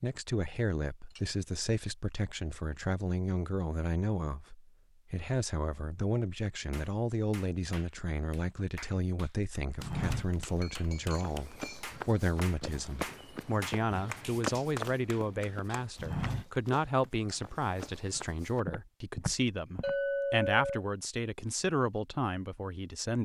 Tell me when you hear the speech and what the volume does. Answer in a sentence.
The speech can be heard from 0.0 to 23.2 s, at a steady volume.